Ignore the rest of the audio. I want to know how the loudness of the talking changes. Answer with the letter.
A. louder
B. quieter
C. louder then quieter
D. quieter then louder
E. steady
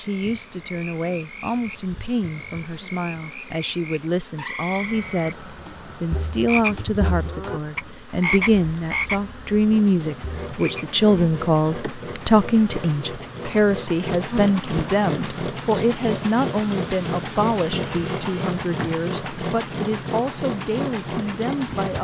C.